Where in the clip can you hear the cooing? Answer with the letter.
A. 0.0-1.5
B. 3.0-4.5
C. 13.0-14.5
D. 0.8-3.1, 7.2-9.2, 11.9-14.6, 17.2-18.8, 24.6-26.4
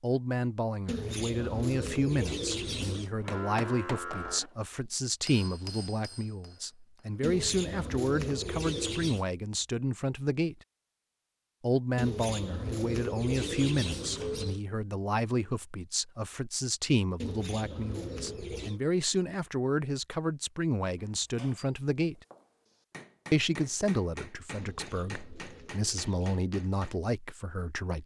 D.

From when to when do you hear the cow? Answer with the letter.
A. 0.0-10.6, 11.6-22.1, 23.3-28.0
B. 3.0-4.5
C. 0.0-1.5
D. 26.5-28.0
B.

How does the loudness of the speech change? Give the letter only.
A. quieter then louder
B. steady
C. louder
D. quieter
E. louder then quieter
B.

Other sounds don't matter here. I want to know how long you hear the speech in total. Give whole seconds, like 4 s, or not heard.
26 s.